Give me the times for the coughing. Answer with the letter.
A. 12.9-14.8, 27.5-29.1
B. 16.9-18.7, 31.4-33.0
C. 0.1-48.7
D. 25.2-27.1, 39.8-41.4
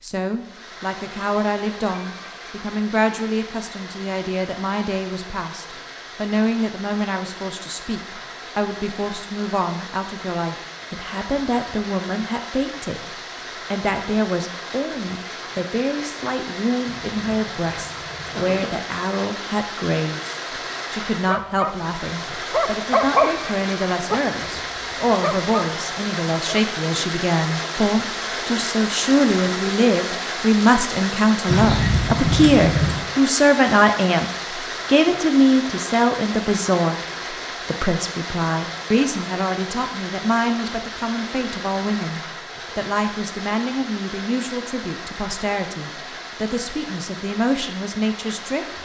B.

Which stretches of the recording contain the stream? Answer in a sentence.
The stream can be heard from 0.1 to 48.7 s.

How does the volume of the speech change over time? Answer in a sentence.
The loudness of the speech goes up, then down.